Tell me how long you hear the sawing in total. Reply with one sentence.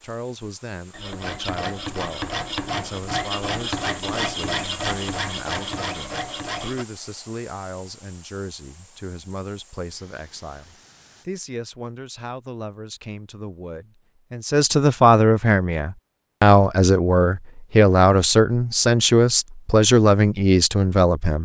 The sawing can be heard for 6 seconds in total.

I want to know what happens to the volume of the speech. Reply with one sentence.
The loudness of the speech goes up.